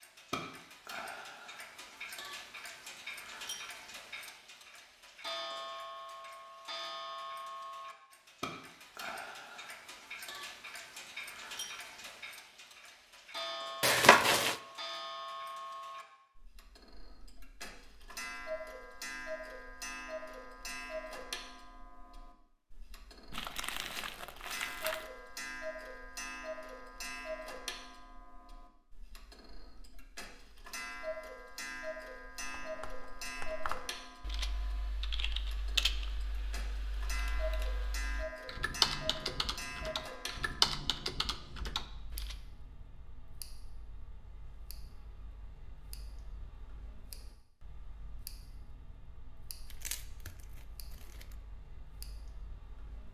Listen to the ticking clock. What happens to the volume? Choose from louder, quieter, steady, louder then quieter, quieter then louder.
quieter.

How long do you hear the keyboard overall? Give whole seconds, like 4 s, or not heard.
10 s.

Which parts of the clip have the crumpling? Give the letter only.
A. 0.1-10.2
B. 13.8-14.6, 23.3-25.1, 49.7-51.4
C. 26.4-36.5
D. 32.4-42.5
B.